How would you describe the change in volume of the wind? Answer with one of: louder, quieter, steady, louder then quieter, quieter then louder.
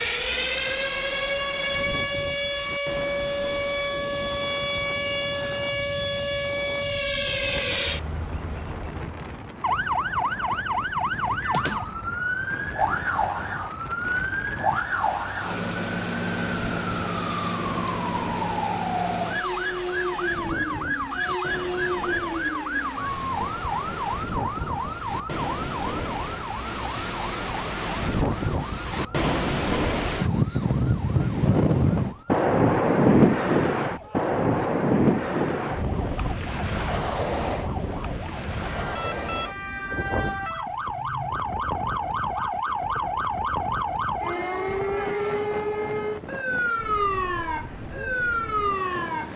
louder then quieter.